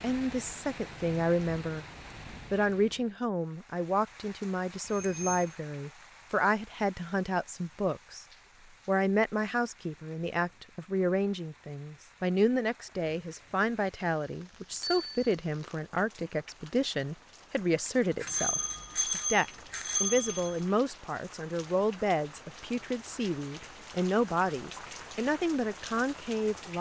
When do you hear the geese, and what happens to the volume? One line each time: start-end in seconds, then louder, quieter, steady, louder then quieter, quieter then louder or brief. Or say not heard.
not heard.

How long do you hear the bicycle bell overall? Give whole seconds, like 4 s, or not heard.
3 s.